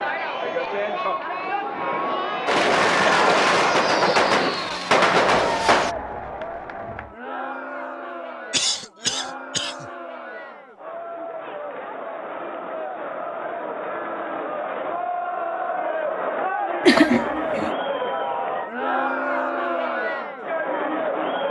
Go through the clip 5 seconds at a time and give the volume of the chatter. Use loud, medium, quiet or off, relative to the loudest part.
loud, medium, medium, loud, loud.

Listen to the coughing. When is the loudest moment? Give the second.
17 s.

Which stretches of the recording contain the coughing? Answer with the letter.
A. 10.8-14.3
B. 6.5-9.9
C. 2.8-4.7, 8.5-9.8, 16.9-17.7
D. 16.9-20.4
C.